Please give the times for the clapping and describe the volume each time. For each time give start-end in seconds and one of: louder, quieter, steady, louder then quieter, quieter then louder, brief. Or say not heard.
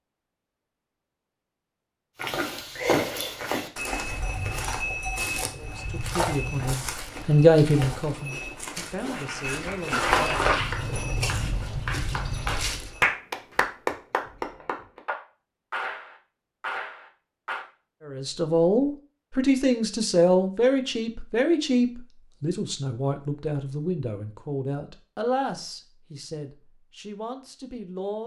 9.0-17.6 louder then quieter.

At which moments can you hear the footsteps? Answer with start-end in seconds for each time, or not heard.
2.1-13.1.